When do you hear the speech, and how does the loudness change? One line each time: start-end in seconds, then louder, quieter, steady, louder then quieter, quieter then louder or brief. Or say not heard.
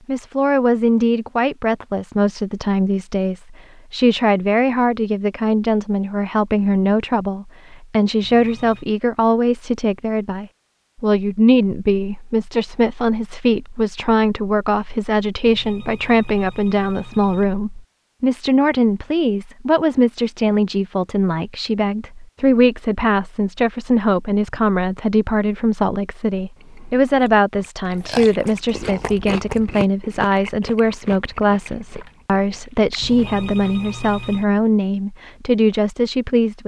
0.1-36.6 steady.